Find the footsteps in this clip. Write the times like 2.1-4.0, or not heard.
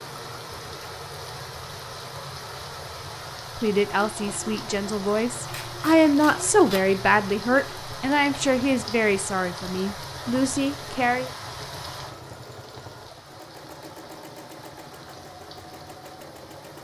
not heard.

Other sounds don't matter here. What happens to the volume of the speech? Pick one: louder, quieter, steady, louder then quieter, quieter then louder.
louder then quieter.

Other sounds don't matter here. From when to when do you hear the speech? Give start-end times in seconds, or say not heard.
3.5-11.3.